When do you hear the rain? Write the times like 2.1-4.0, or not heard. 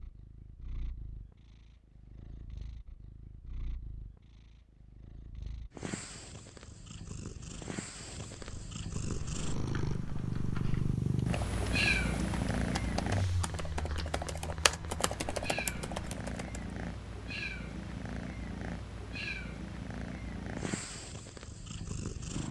not heard.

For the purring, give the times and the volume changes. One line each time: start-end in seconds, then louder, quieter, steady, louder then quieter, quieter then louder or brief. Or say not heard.
0.0-22.4 louder then quieter.